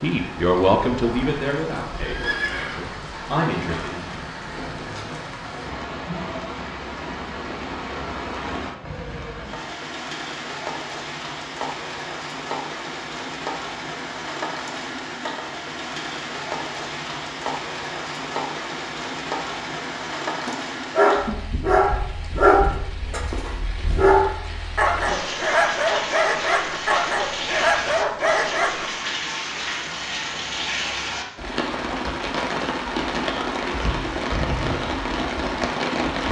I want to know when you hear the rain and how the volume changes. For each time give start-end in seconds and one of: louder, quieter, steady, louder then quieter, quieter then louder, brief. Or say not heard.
0.0-36.2 louder.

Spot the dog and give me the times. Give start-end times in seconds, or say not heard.
20.4-28.9.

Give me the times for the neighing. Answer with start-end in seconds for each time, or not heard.
2.0-3.0.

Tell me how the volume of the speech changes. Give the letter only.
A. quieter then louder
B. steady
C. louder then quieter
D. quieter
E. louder
A.